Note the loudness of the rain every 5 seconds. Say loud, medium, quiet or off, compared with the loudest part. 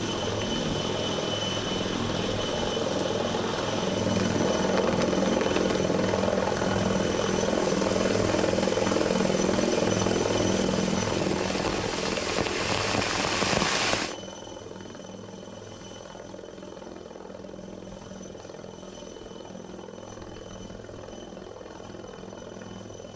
medium, medium, loud, off, off.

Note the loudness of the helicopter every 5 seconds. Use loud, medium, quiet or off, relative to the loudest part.
loud, loud, medium, quiet, quiet.